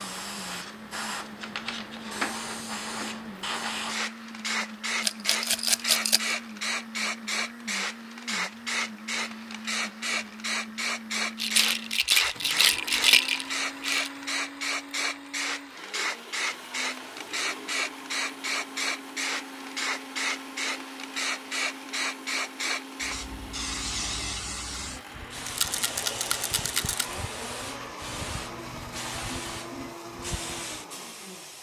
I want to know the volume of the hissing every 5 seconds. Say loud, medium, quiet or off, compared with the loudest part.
loud, loud, loud, loud, loud, medium, medium.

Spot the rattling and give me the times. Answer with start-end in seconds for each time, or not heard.
5.0-6.3, 11.3-14.1, 25.4-27.1.